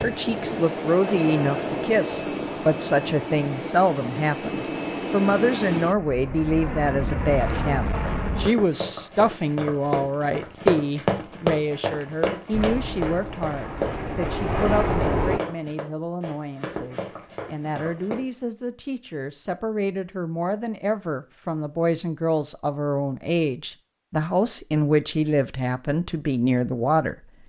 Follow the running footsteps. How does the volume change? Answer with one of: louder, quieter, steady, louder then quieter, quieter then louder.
louder then quieter.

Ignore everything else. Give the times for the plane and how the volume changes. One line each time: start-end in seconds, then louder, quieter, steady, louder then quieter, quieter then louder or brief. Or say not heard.
0.0-8.5 steady
12.5-15.4 brief.